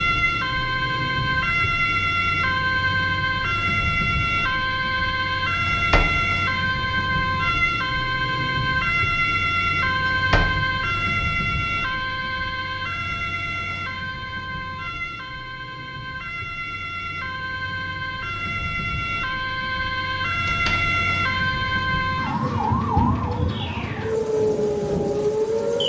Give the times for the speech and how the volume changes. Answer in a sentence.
The speech can't be heard in this clip.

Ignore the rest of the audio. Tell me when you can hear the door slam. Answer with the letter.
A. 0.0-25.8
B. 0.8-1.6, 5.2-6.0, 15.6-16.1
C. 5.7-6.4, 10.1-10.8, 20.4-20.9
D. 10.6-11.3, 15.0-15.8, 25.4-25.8
C.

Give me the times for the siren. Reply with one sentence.
The siren can be heard from 0.0 to 25.8 s.